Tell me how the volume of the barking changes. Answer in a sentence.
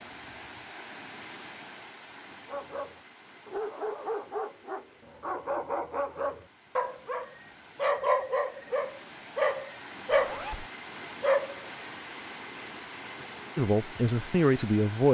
The loudness of the barking goes up.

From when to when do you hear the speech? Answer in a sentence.
The speech can be heard from 13.6 to 15.0 s.